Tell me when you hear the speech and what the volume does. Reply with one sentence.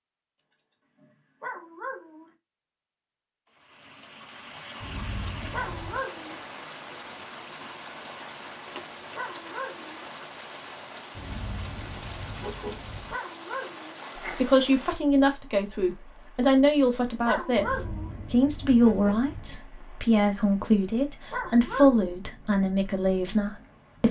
The speech can be heard from 14.3 to 24.0 s, at a steady volume.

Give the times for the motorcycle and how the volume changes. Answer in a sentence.
The motorcycle can't be heard in this clip.